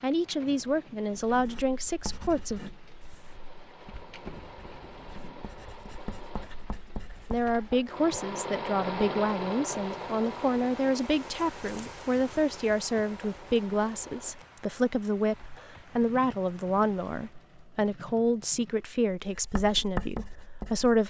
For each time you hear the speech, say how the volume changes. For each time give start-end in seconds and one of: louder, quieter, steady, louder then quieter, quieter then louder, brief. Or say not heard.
0.0-2.6 brief
7.3-21.0 steady.